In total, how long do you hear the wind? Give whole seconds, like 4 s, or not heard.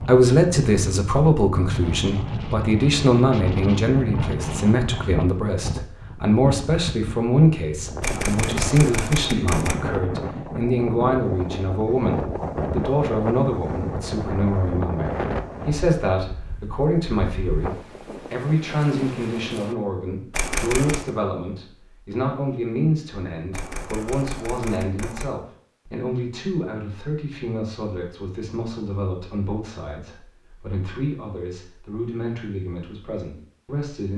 20 s.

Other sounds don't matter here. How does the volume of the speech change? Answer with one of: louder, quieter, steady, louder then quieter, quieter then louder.
quieter.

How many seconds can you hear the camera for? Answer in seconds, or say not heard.
4 s.